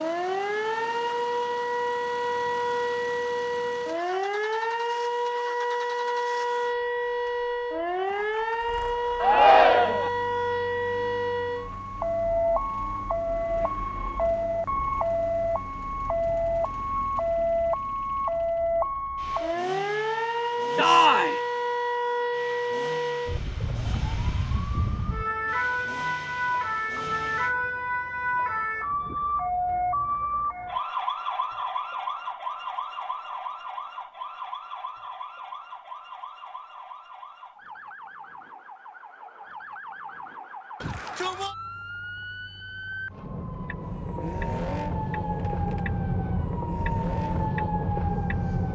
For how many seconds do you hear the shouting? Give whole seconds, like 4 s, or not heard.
2 s.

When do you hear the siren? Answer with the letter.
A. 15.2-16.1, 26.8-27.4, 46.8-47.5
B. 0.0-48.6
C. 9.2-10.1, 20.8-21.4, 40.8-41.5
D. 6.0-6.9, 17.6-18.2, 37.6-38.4
B.